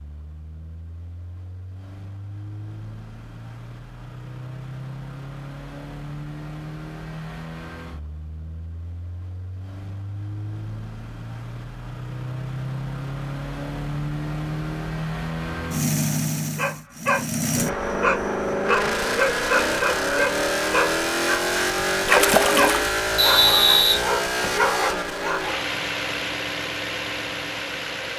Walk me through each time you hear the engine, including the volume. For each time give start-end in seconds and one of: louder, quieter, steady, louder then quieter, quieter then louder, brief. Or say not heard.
0.0-28.1 louder.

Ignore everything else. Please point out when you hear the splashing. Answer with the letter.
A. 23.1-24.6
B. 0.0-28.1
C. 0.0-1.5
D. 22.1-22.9
D.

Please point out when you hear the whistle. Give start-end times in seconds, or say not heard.
23.1-24.6.